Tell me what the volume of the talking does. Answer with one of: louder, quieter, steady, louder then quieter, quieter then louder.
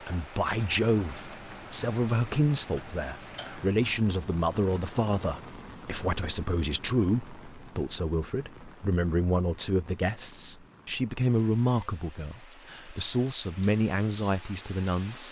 steady.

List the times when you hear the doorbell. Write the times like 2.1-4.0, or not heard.
not heard.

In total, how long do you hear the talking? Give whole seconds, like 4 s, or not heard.
15 s.